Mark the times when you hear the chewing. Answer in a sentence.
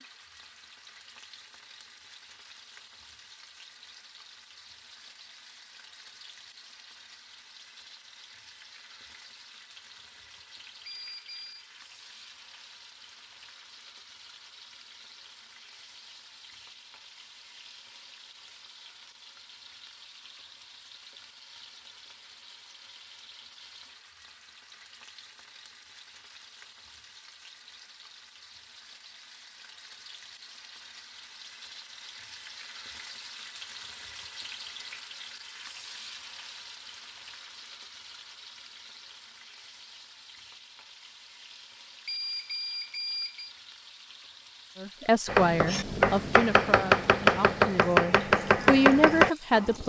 The chewing can't be heard in this clip.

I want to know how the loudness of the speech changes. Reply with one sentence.
The volume of the speech goes down, then up.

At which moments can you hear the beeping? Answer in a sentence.
You can hear the beeping from 10.8 to 11.7 s and from 42.0 to 43.5 s.